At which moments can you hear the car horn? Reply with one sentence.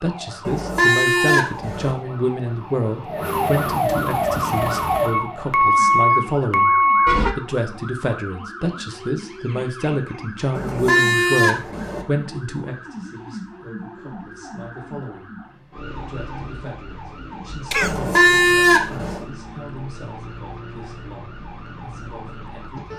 You can hear the car horn from 0.5 to 1.9 s, from 10.6 to 12.1 s and from 17.8 to 19.2 s.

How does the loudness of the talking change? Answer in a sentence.
The loudness of the talking goes down.